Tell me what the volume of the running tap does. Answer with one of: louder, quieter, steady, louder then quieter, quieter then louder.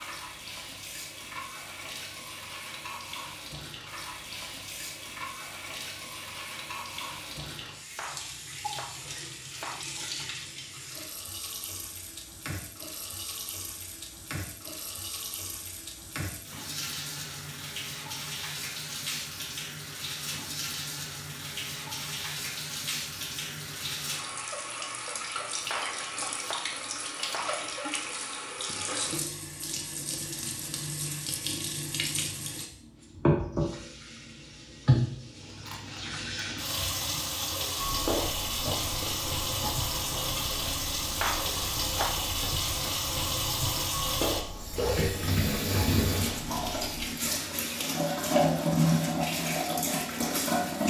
louder.